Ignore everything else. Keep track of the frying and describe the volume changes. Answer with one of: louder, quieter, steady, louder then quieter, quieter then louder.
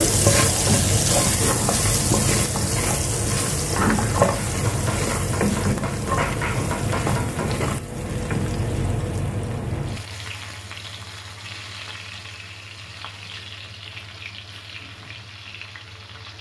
quieter.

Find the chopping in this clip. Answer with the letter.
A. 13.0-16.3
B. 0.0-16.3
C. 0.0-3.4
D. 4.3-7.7
D.